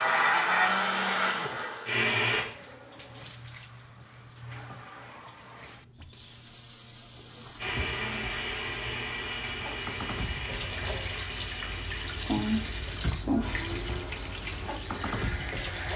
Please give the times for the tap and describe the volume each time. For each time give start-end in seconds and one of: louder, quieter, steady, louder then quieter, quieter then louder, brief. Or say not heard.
0.2-15.9 louder.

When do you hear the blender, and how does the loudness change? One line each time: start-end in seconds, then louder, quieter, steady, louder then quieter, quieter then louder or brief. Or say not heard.
0.0-2.5 brief
7.5-15.9 quieter.